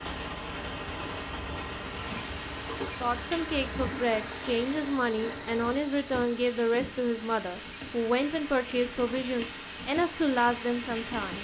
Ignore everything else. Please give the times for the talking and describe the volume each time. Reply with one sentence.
The talking can be heard from 3.0 to 11.3 s, at a steady volume.